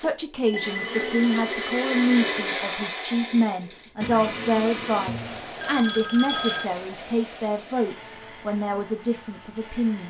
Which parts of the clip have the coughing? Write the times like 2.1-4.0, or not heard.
not heard.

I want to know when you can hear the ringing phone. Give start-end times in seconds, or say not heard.
0.5-2.5, 5.0-6.7.